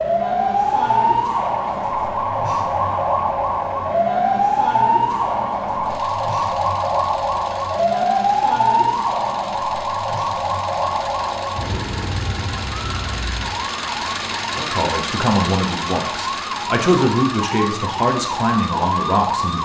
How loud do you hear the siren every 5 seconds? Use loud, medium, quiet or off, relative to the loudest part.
loud, loud, medium, medium.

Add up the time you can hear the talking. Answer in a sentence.
You can hear the talking for 5 seconds altogether.